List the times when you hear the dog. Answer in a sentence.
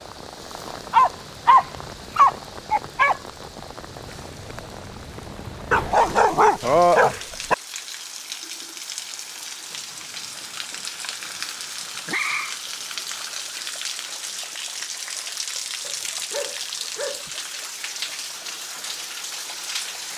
You can hear the dog from 0.9 to 3.2 s, from 5.7 to 7.5 s, from 10.7 to 12.6 s and from 15.8 to 17.4 s.